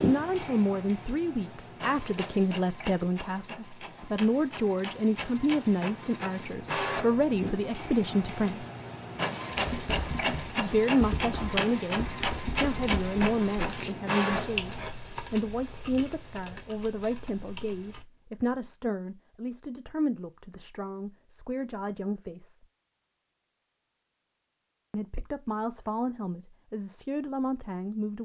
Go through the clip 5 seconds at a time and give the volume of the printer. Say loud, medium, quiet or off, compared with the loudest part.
medium, loud, loud, off, off, off.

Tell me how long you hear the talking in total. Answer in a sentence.
The talking can be heard for 24 seconds in total.